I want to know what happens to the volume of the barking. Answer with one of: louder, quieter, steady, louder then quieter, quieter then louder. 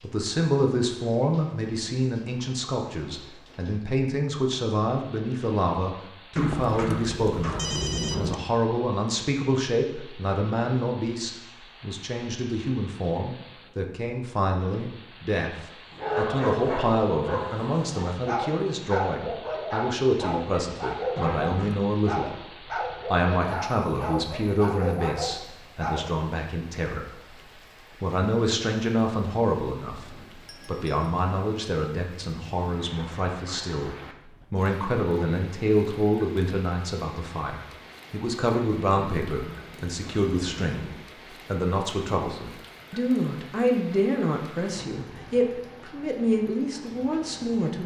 steady.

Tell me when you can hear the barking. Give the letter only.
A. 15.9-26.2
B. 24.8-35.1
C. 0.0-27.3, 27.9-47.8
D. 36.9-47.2
A.